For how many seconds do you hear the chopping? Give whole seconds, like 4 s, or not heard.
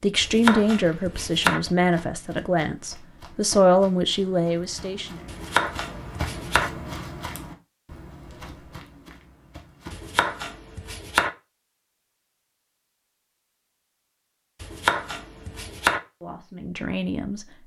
6 s.